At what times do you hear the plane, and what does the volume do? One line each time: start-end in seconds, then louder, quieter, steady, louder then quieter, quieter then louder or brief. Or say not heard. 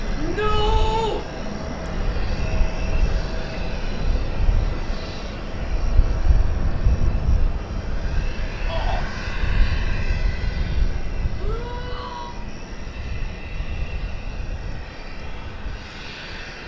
0.0-16.6 quieter.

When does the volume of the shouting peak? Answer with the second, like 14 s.
1 s.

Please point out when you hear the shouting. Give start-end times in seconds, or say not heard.
0.1-1.2, 8.7-9.1, 11.3-12.4.